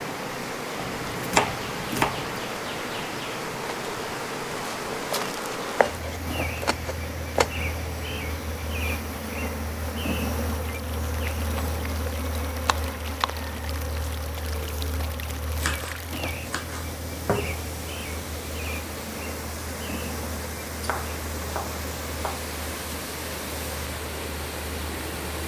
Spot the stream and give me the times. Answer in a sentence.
You can hear the stream from 0.0 to 25.4 s.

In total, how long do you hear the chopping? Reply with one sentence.
You can hear the chopping for 8 seconds altogether.